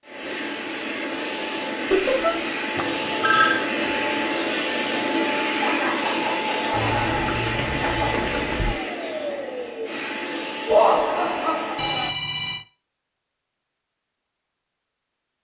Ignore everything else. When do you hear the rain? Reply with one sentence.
The rain can't be heard in this clip.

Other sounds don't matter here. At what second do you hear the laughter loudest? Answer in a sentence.
The volume of the laughter peaks at 11 seconds.